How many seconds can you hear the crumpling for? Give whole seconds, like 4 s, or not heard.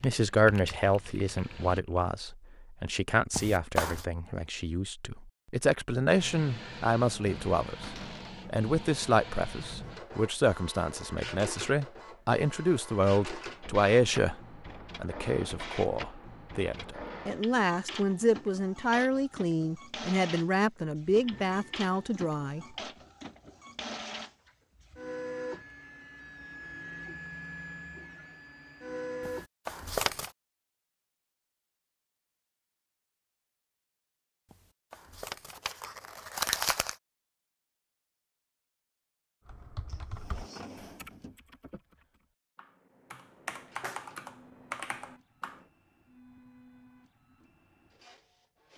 4 s.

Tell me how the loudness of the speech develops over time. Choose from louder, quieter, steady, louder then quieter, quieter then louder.
steady.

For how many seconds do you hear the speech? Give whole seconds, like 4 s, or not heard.
22 s.